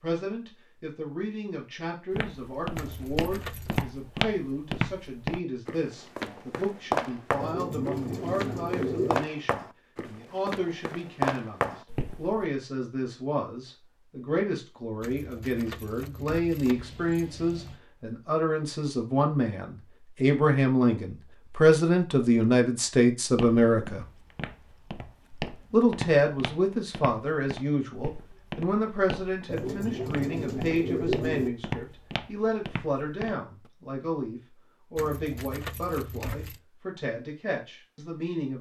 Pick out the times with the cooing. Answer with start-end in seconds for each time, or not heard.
7.4-9.3, 29.4-31.5.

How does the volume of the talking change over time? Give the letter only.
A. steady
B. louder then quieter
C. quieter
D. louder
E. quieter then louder
B.